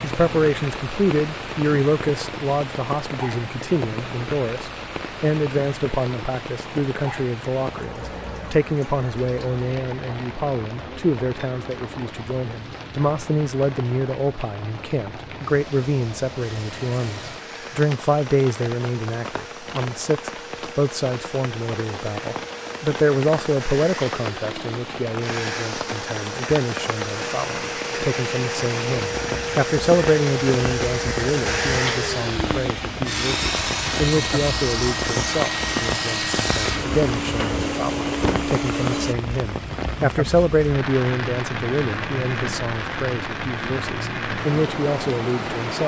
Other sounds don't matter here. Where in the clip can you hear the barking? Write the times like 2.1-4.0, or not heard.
not heard.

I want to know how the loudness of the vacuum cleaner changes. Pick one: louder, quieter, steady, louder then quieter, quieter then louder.
louder.